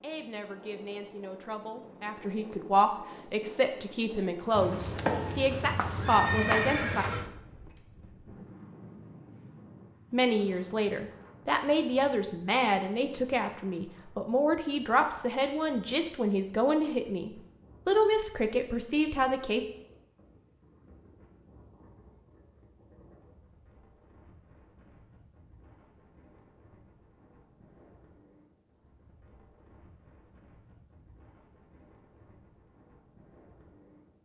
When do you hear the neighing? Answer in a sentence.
The neighing can be heard from 4.5 to 7.3 s.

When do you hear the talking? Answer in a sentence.
The talking can be heard from 0.0 to 7.0 s and from 10.1 to 19.6 s.